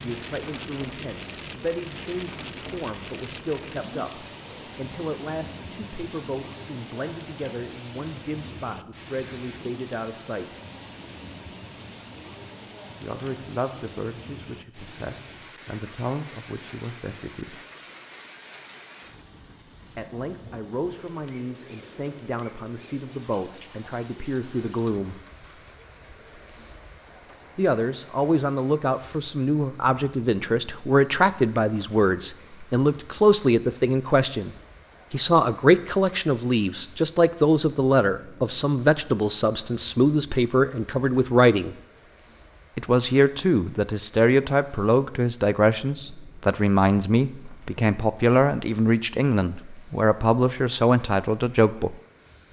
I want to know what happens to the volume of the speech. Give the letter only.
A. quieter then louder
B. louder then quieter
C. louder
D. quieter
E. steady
C.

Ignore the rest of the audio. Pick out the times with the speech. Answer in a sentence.
The speech can be heard from 0.0 to 10.6 s, from 13.0 to 17.6 s, from 19.9 to 25.2 s, from 27.6 to 34.5 s, from 35.1 to 41.8 s and from 42.8 to 52.0 s.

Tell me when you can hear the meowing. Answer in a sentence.
You can't hear the meowing here.